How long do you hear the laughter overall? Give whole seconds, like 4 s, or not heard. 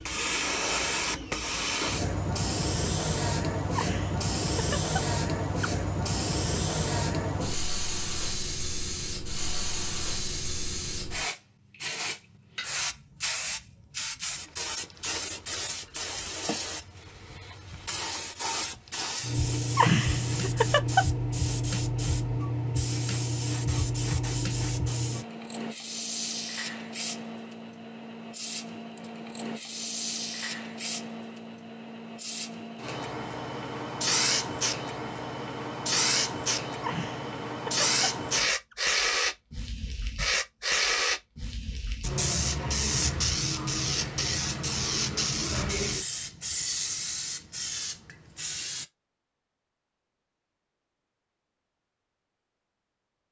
5 s.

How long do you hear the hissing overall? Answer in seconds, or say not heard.
49 s.